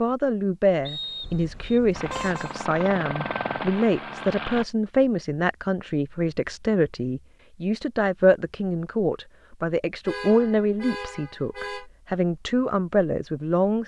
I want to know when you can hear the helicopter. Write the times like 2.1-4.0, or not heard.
1.9-4.7.